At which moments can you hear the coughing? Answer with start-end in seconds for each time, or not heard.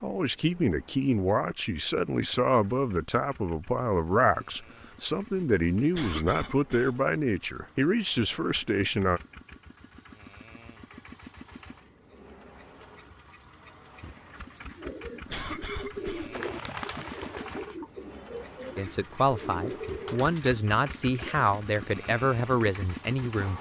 5.9-7.0, 15.2-16.4.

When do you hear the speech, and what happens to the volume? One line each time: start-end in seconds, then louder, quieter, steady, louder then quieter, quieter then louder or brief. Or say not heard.
0.0-9.2 steady
18.8-23.5 steady.